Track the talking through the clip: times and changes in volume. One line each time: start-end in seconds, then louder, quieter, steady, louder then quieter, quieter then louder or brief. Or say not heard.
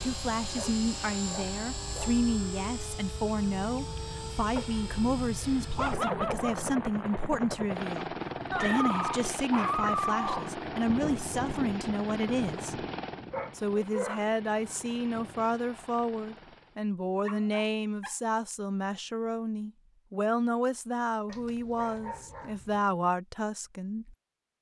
0.0-12.8 steady
13.6-24.1 steady.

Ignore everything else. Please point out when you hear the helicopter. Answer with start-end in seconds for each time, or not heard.
0.0-16.8.